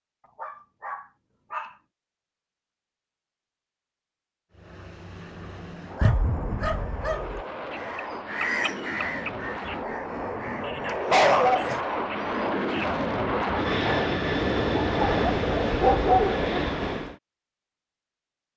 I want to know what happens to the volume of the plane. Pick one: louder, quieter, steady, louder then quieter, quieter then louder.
louder.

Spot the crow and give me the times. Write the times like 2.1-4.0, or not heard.
7.7-13.0.